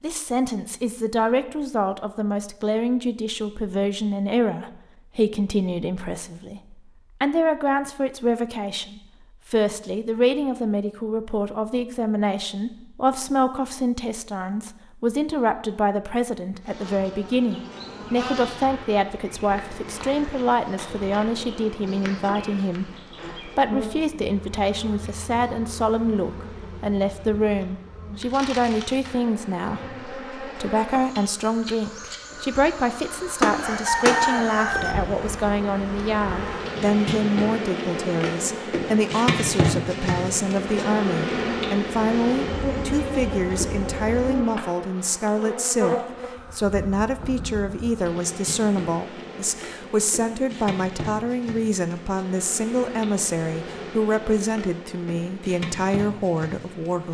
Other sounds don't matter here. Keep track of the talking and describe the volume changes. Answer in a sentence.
The volume of the talking stays about the same.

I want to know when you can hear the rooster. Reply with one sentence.
The rooster can be heard from 33.4 to 35.0 s.